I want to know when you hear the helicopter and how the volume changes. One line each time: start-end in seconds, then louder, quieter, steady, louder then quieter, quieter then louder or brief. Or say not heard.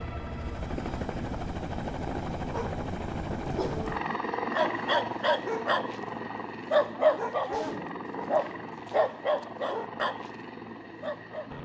0.0-11.5 quieter.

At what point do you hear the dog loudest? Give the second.
7 s.